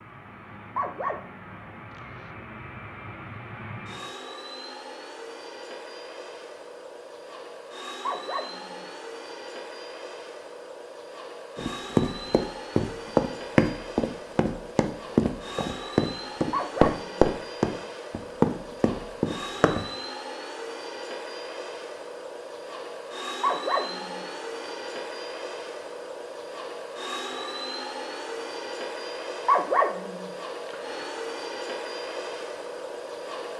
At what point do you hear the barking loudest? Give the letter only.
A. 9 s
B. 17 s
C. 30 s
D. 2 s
C.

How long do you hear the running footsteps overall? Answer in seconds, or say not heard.
8 s.